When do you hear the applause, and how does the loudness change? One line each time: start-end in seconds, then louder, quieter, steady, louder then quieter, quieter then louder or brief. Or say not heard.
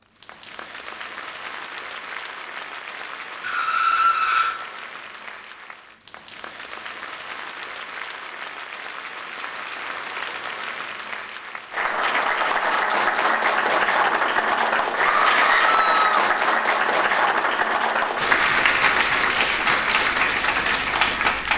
0.0-21.5 louder.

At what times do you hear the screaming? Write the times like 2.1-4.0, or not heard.
3.4-4.5, 15.0-16.1.